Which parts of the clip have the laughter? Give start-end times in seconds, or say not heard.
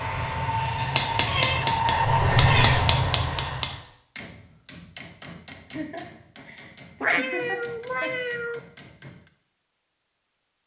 5.7-8.2.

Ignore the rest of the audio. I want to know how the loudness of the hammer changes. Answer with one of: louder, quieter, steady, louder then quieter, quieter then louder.
quieter.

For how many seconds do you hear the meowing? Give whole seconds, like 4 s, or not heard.
3 s.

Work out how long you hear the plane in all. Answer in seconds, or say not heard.
4 s.